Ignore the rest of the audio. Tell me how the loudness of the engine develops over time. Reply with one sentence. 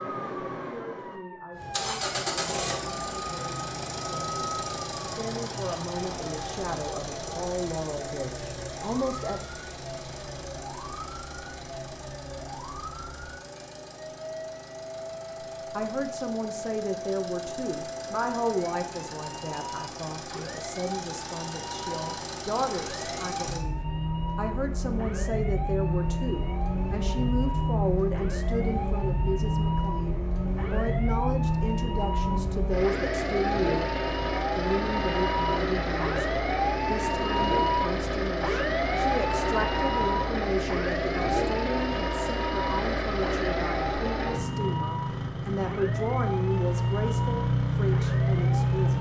The loudness of the engine goes down, then up.